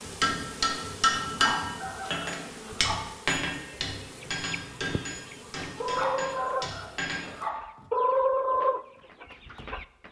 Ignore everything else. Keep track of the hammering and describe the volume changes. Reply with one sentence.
The loudness of the hammering goes down.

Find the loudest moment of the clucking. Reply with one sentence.
The loudest moment of the clucking is at 8 seconds.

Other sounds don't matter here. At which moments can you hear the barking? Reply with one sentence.
The barking can be heard from 1.2 to 3.0 s and from 5.8 to 7.5 s.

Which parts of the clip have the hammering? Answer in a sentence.
The hammering can be heard from 0.1 to 7.3 s.